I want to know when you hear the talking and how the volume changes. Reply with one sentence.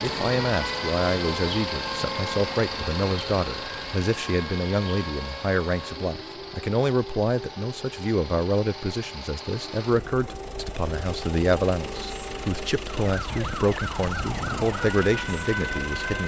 You can hear the talking from 0.0 to 16.2 s, at a steady volume.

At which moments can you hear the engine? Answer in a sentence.
You can hear the engine from 0.0 to 16.2 s.